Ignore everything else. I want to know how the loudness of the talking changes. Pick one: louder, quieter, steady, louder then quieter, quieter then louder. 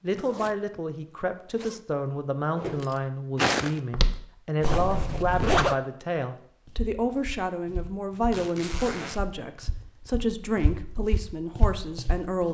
steady.